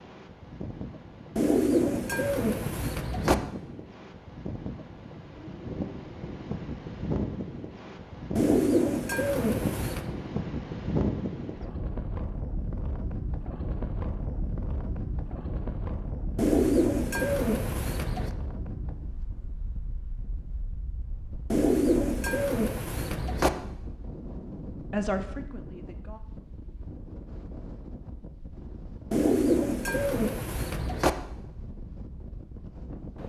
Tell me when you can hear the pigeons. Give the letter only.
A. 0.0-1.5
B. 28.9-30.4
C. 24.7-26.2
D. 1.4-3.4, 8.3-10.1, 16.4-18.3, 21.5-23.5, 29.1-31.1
D.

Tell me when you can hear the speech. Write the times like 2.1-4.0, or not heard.
24.7-26.2.